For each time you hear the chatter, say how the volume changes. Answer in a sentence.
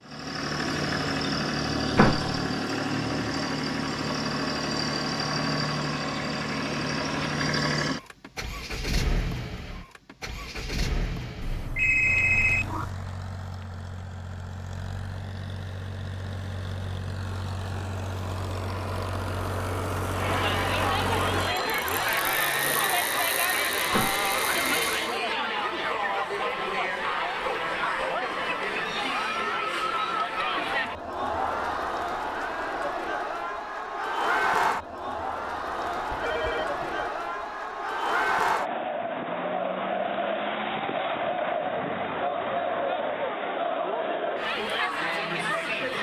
You can hear the chatter from 20.1 to 45.9 s, at a steady volume.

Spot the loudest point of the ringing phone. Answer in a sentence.
The loudest moment of the ringing phone is at 12 seconds.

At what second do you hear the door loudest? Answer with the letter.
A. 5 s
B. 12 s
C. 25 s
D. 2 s
D.